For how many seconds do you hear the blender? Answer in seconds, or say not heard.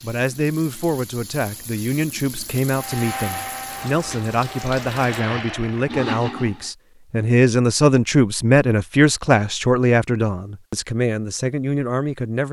4 s.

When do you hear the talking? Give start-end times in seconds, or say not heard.
0.0-12.4.